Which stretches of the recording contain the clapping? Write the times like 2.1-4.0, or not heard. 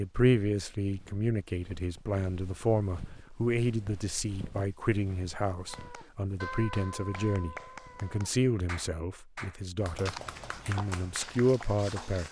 5.7-12.1.